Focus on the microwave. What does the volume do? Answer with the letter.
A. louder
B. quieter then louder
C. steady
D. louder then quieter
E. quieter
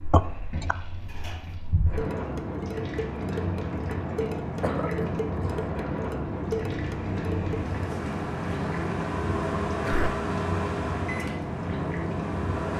D.